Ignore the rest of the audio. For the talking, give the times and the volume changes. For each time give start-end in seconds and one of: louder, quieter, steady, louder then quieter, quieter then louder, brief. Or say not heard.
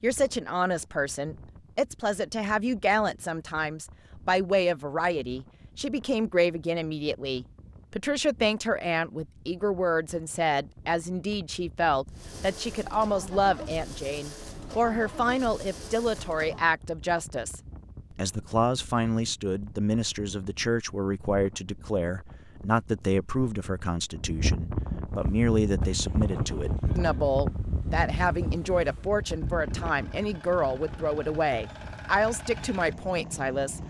0.0-33.8 steady.